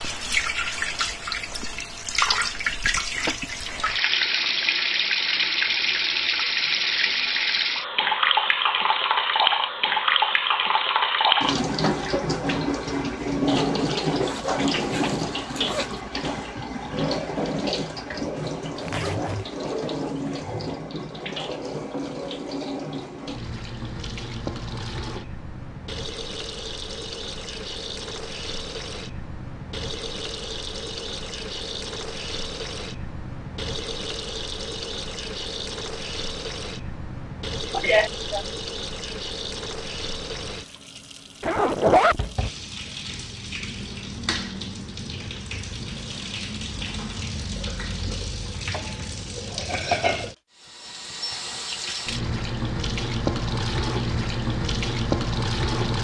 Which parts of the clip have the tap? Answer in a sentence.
You can hear the tap from 0.0 to 56.0 s.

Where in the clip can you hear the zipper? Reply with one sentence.
The zipper can be heard from 14.2 to 16.0 s, from 18.8 to 19.5 s and from 41.4 to 42.2 s.